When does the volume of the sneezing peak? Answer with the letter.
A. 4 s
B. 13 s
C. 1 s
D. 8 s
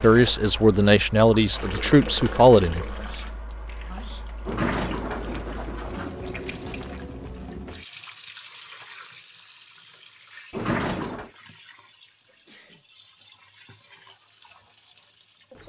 A.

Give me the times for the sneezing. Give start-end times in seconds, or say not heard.
3.0-4.4, 12.2-12.8.